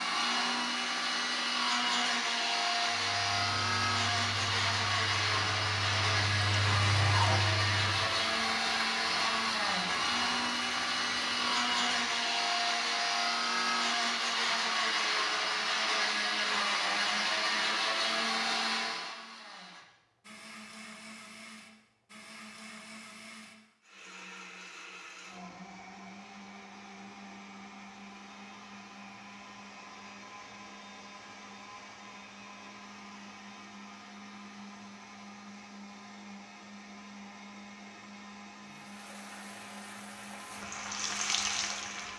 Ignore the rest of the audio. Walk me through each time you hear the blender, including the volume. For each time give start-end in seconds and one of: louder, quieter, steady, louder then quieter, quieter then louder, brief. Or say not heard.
0.0-42.1 quieter.